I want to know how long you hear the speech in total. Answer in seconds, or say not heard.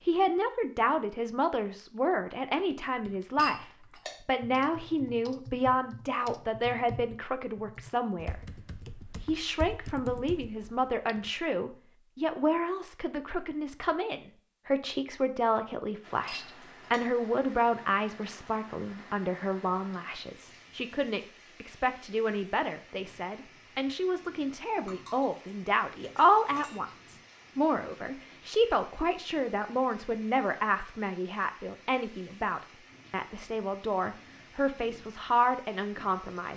36 s.